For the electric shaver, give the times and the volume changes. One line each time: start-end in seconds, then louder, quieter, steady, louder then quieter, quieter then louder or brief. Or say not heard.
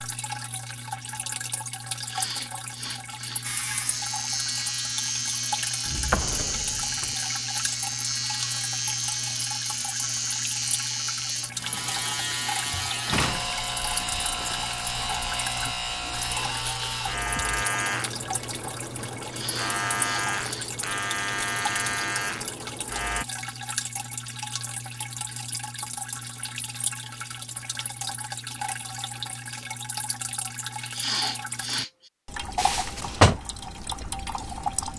3.4-23.2 steady.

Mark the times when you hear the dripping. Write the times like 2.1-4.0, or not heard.
0.0-34.9.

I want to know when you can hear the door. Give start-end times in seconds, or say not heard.
5.8-7.1, 12.9-14.7, 32.5-33.4.